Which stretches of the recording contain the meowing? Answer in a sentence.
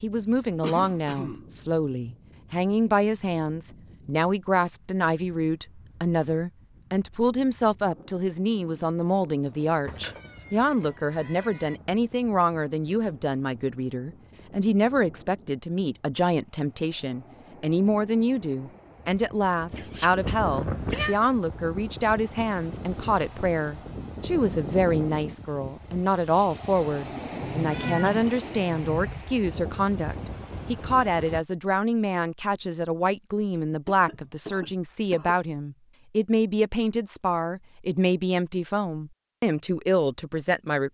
The meowing can be heard from 9.8 to 11.8 s, from 19.7 to 21.1 s and from 27.4 to 29.2 s.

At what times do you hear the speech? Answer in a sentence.
You can hear the speech from 0.0 to 40.9 s.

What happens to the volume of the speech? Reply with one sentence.
The loudness of the speech stays about the same.